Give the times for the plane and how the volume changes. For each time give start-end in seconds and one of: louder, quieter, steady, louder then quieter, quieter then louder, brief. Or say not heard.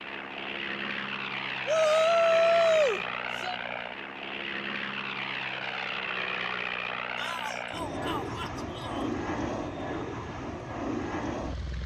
0.0-11.8 steady.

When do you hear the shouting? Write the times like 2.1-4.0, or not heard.
1.6-3.5, 7.2-9.1.